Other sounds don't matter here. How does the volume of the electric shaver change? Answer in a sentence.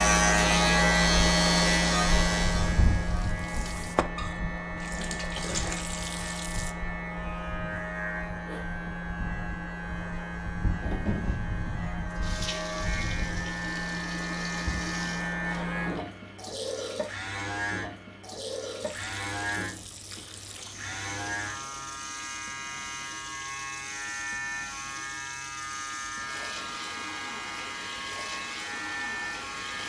The loudness of the electric shaver goes down.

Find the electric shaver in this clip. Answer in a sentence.
The electric shaver can be heard from 0.0 to 29.8 s.